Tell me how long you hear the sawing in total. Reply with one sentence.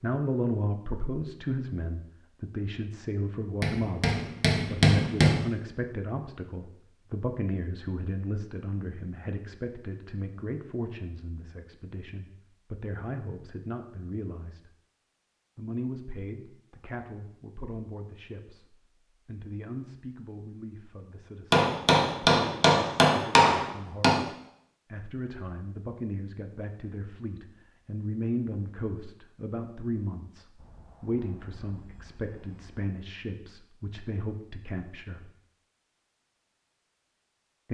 You can't hear the sawing here.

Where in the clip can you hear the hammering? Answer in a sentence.
The hammering can be heard from 3.6 to 5.4 s and from 21.5 to 24.2 s.